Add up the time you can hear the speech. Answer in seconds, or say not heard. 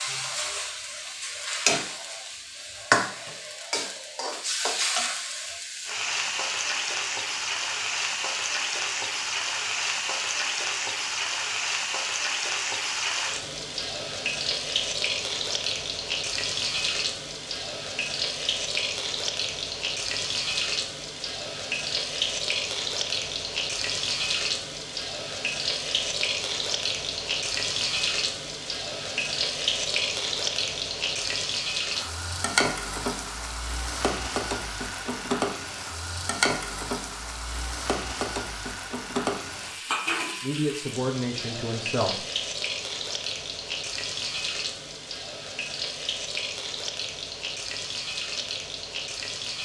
2 s.